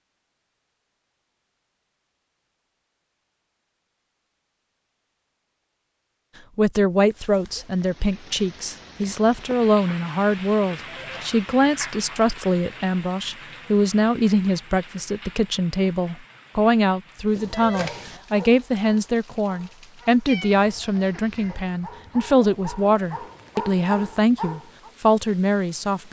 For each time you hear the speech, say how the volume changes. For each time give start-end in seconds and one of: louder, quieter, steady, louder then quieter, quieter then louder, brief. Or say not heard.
6.5-26.0 steady.